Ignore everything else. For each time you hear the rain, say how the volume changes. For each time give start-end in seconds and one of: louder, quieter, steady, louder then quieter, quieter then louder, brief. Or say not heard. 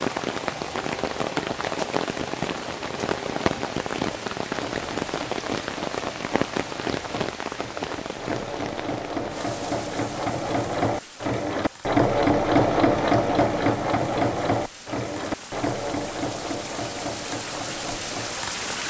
0.0-18.8 quieter then louder.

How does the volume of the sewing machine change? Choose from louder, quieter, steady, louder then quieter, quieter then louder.
louder then quieter.